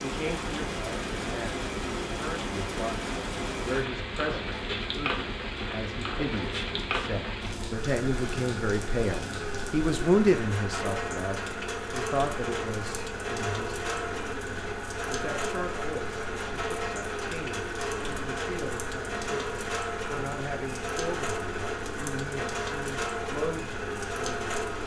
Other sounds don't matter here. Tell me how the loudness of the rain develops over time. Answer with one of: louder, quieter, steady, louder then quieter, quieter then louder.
steady.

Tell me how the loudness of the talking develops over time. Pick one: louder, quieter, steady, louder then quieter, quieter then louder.
louder then quieter.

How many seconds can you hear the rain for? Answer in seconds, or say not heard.
25 s.